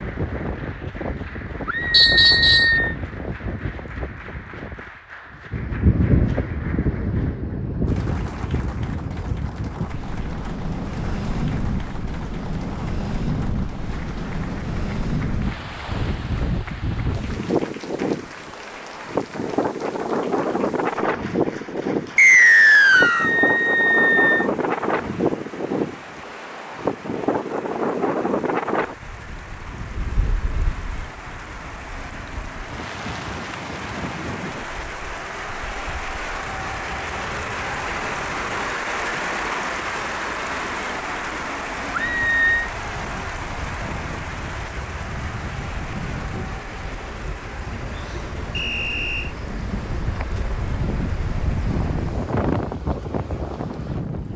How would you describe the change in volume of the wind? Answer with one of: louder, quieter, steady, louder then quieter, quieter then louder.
quieter then louder.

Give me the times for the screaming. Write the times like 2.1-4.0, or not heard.
1.6-3.0, 22.9-24.5, 41.9-42.7.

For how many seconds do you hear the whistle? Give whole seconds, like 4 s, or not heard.
3 s.